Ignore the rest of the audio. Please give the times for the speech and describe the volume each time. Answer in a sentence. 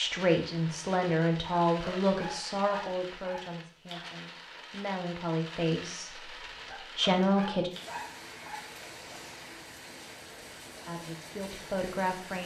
The speech can be heard from 0.0 to 7.7 s, getting quieter then louder; and briefly from 10.8 to 12.4 s.